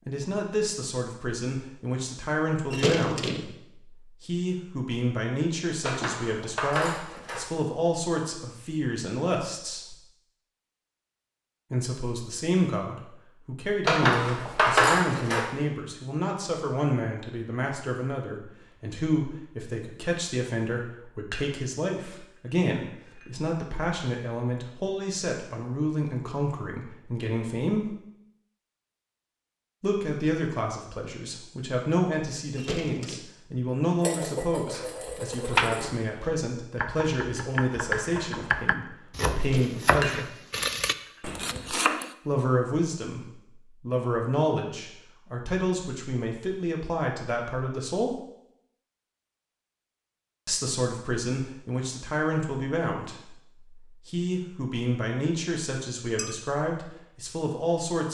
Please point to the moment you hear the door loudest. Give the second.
3 s.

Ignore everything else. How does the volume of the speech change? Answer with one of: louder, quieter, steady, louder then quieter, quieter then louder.
steady.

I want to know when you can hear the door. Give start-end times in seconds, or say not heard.
2.7-3.5, 32.5-33.2, 39.4-40.0.